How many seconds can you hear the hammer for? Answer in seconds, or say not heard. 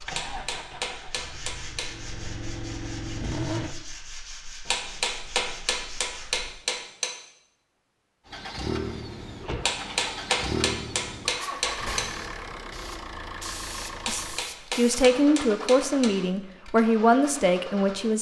9 s.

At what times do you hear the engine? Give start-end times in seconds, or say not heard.
0.0-3.8, 8.2-18.1.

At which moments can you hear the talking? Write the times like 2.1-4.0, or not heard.
14.1-18.1.